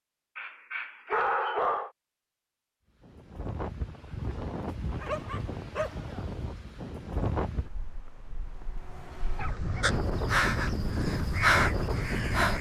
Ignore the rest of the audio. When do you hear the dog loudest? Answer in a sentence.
The volume of the dog peaks at 1 second.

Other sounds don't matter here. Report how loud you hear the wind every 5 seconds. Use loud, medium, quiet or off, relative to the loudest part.
medium, medium, loud.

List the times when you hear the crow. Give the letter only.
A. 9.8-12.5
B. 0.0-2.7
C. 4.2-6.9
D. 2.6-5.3
A.